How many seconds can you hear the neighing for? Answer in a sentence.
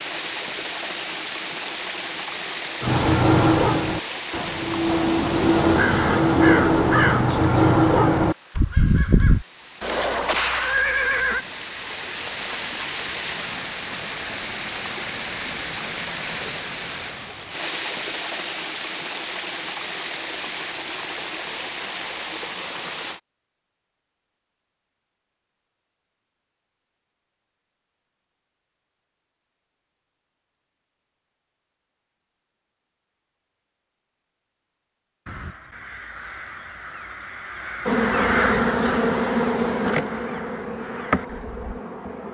You can hear the neighing for 2 seconds altogether.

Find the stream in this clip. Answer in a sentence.
The stream can be heard from 0.0 to 23.2 s.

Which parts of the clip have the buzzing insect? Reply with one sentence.
You can hear the buzzing insect from 37.9 to 42.2 s.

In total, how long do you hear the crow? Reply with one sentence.
The crow can be heard for 13 seconds in total.